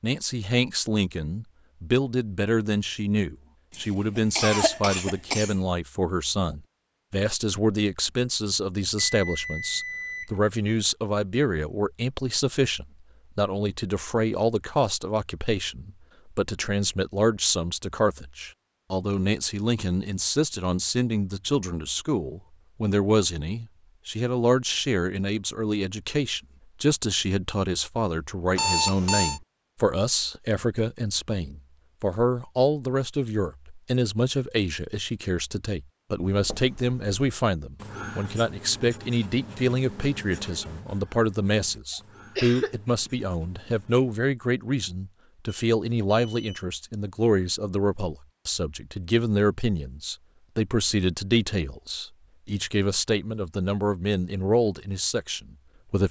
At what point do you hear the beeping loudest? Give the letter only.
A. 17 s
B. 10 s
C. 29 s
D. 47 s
C.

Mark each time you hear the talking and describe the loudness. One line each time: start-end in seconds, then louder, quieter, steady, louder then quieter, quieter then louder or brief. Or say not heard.
0.0-56.0 steady.